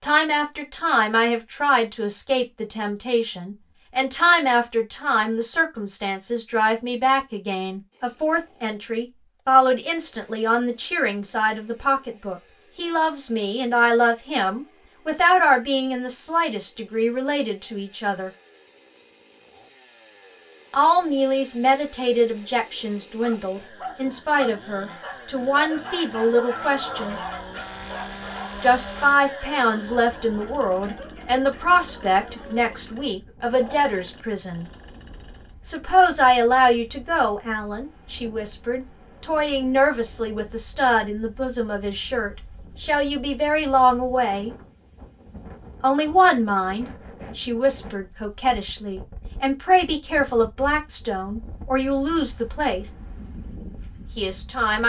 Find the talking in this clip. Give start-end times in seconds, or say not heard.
0.0-18.3, 20.7-27.2, 28.6-34.6, 35.6-44.5, 45.8-52.9, 54.1-54.8.